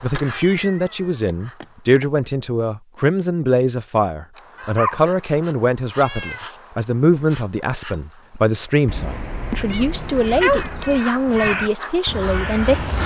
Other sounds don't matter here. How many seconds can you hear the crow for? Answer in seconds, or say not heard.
3 s.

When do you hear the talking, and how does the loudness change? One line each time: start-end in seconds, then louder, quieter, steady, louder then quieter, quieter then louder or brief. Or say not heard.
0.0-13.0 steady.